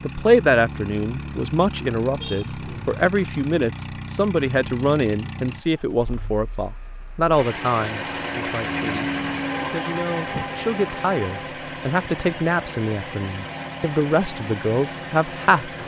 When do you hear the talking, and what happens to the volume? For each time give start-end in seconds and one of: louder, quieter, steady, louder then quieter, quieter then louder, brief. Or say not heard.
0.0-15.8 steady.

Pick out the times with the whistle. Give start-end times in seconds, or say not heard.
not heard.